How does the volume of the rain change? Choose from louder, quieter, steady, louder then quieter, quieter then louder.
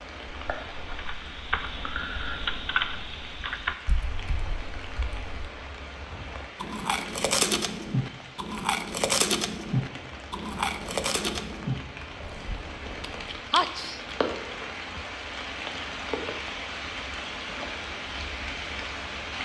louder.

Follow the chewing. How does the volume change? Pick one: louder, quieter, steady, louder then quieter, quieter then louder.
quieter.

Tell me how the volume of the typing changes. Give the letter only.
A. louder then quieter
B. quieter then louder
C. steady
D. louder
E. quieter
A.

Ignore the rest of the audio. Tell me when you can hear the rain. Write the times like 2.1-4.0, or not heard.
0.0-19.4.